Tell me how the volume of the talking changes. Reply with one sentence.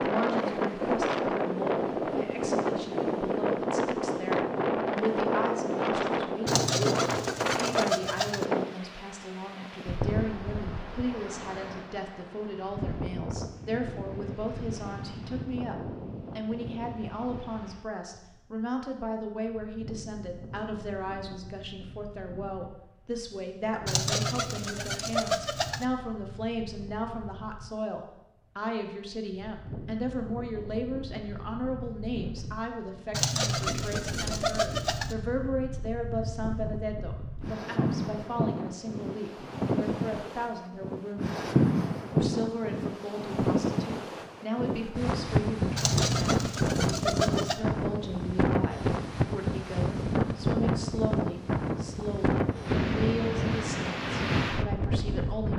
The loudness of the talking stays about the same.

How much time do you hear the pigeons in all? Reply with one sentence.
You can hear the pigeons for 8 seconds altogether.